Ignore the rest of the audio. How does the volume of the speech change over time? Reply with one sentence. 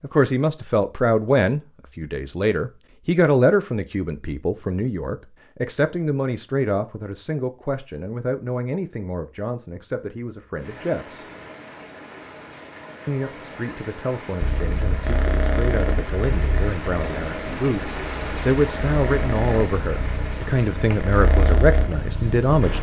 The volume of the speech goes down, then up.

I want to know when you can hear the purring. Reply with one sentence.
You can hear the purring from 14.4 to 22.7 s.